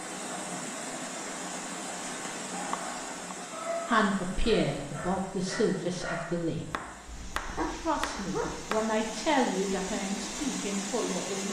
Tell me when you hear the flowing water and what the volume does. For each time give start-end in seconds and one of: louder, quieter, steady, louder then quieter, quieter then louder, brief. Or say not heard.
0.0-11.4 quieter then louder.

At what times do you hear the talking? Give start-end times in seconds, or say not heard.
3.9-6.7, 7.7-11.4.